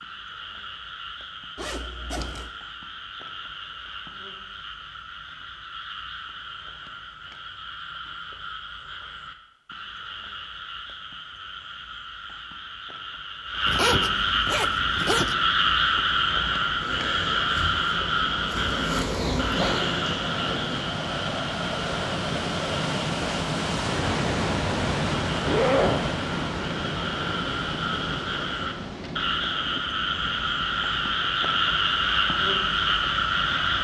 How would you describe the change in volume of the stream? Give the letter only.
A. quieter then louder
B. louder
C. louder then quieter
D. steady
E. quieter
C.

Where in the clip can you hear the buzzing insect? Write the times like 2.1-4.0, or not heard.
16.8-20.9.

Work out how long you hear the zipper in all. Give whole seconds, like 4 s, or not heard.
3 s.